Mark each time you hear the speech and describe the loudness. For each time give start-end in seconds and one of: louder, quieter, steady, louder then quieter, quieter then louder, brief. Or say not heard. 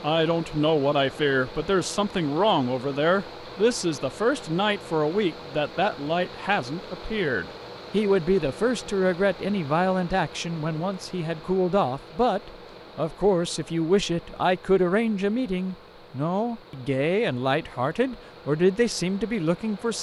0.0-19.9 steady.